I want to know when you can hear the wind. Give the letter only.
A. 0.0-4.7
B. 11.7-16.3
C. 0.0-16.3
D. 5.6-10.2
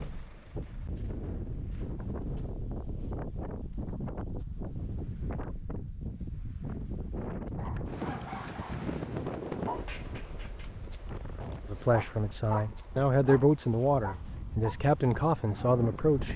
C.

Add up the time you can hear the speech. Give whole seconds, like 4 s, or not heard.
5 s.